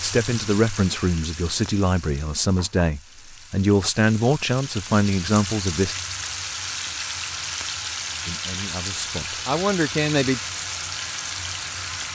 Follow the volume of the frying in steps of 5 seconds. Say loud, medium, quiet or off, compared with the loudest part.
medium, loud, loud.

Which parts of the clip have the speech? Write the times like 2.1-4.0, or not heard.
0.0-6.0, 8.2-10.4.